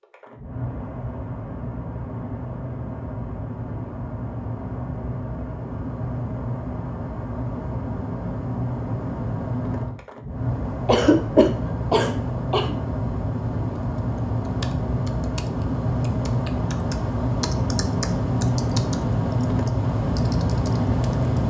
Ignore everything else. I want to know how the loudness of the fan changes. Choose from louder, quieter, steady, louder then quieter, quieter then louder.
louder.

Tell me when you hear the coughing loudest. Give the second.
11 s.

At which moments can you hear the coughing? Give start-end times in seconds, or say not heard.
10.8-12.7.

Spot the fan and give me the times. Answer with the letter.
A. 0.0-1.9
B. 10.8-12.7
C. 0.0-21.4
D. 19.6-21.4
C.